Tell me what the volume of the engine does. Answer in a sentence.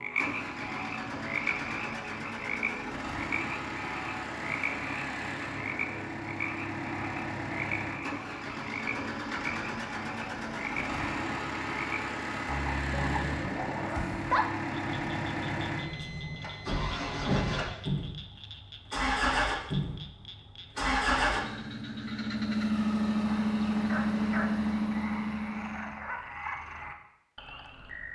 The loudness of the engine goes up.